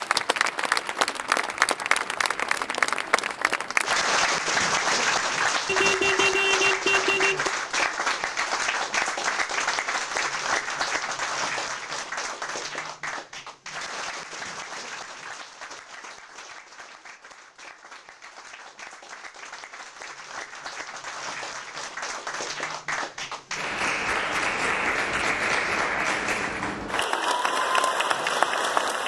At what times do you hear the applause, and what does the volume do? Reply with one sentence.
The applause can be heard from 0.0 to 29.0 s, getting quieter then louder.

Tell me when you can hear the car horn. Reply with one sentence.
The car horn can be heard from 5.7 to 7.5 s.